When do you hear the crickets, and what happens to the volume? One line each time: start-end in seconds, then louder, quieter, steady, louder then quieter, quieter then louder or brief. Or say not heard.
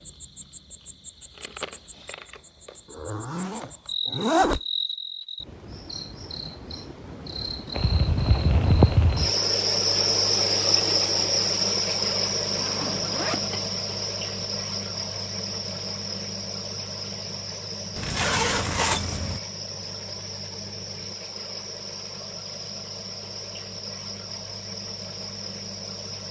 0.0-26.2 louder then quieter.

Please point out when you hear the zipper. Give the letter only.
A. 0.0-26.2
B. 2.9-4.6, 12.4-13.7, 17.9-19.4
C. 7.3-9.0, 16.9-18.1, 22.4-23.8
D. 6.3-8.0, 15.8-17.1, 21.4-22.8
B.